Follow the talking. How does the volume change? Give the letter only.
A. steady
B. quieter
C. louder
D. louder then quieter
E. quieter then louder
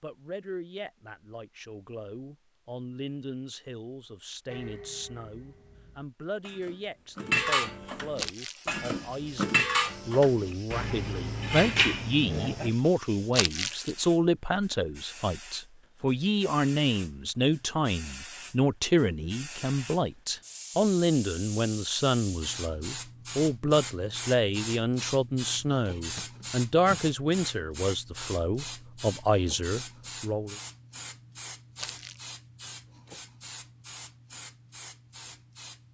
C.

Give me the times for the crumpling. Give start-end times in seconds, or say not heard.
8.2-8.8, 13.3-13.9, 31.8-32.4.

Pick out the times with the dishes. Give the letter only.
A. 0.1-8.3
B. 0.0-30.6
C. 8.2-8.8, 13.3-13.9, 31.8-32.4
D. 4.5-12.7
D.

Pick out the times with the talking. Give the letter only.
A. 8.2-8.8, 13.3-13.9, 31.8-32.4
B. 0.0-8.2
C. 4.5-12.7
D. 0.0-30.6
D.